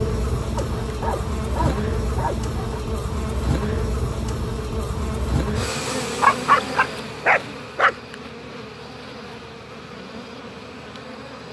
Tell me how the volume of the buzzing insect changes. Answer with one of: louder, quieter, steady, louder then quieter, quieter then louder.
quieter.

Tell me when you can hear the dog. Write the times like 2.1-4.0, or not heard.
0.6-2.8, 6.2-8.2.